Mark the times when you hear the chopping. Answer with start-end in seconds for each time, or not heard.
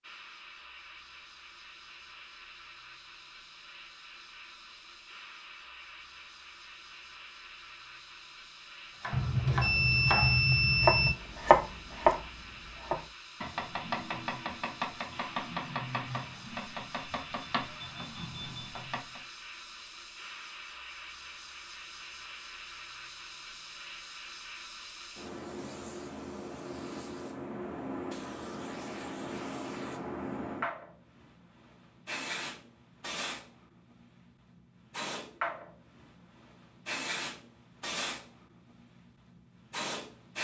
9.0-19.2.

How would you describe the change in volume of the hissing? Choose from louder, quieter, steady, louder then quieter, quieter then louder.
louder.